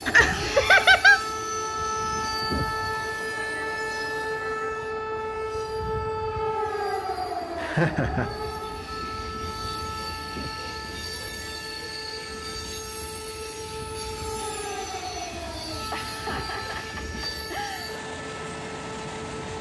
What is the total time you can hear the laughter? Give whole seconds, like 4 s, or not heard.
4 s.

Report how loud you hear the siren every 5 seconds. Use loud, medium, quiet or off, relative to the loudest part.
loud, loud, medium, medium.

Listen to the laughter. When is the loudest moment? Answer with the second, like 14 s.
1 s.